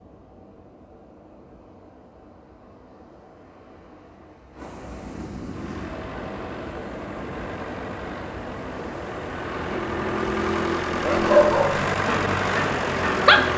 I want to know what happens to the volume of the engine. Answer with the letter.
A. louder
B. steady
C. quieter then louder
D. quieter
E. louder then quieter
A.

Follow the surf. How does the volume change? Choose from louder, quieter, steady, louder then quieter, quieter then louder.
louder.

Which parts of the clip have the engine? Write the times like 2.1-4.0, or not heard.
5.5-13.5.